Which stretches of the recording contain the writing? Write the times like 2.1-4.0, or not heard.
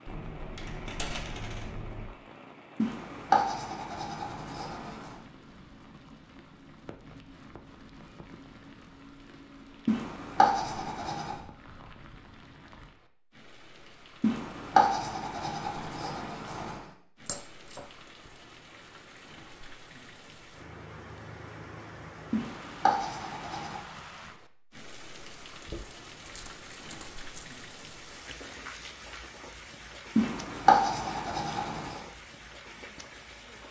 2.8-5.1, 9.8-11.3, 14.2-16.8, 22.3-23.8, 30.1-32.0.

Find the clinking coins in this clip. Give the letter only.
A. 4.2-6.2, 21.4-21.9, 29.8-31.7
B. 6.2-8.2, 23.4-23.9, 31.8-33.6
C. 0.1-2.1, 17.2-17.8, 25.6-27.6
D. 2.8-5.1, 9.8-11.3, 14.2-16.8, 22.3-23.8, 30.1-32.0
C.